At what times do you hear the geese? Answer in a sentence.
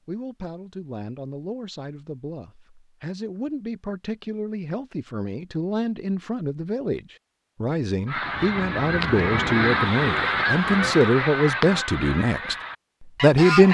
The geese can be heard from 8.1 to 13.6 s.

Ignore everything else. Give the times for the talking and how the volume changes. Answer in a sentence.
You can hear the talking from 0.1 to 12.6 s, getting louder; and briefly from 13.2 to 13.6 s.